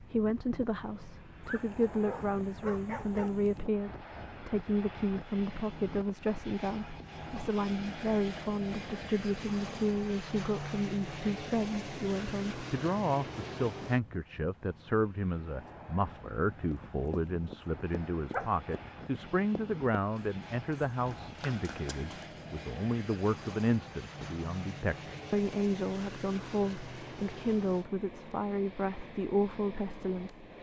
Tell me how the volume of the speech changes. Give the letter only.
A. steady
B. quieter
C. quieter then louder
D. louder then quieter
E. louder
A.